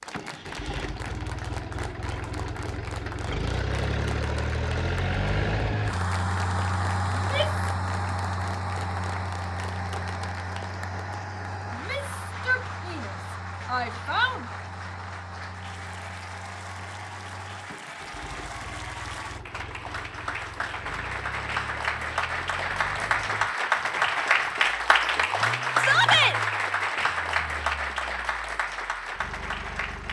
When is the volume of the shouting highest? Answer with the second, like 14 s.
26 s.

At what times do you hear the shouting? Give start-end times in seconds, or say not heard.
7.1-7.7, 11.8-14.4, 25.8-26.4.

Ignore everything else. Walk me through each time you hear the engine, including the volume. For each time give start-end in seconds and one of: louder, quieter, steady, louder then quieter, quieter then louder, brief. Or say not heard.
0.0-30.0 quieter.